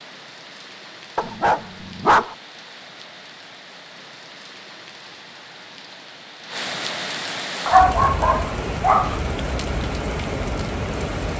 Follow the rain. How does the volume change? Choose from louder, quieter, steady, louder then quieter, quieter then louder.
louder.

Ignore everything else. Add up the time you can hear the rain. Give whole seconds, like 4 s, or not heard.
11 s.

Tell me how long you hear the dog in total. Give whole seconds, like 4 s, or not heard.
3 s.